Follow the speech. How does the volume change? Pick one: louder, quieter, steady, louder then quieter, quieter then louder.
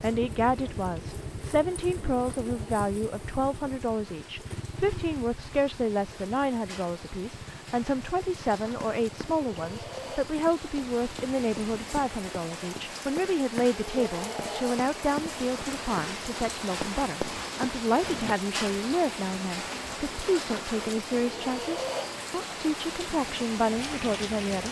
steady.